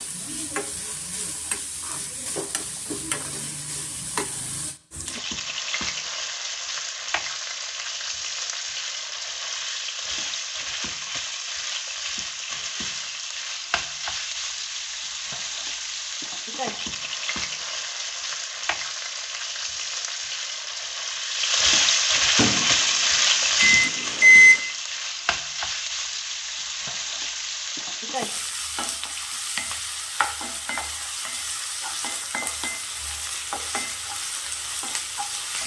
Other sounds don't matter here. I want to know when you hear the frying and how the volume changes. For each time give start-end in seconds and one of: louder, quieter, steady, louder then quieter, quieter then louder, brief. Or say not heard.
0.0-35.6 louder then quieter.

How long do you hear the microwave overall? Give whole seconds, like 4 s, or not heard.
2 s.